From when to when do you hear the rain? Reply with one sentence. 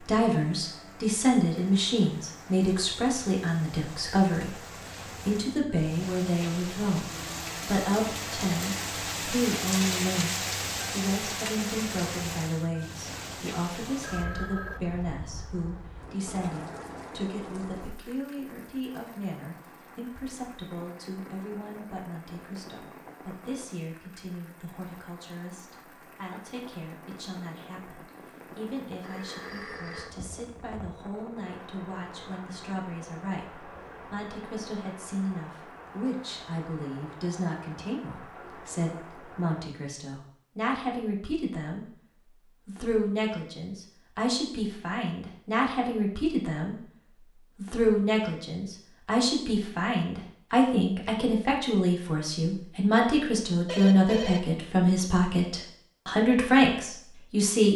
The rain can be heard from 0.0 to 39.6 s.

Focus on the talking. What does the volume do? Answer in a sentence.
The volume of the talking goes down, then up.